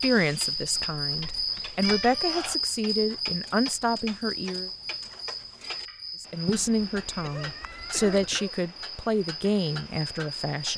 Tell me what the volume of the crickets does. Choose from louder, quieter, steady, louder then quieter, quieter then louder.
quieter.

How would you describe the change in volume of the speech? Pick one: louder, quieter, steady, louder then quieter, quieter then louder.
steady.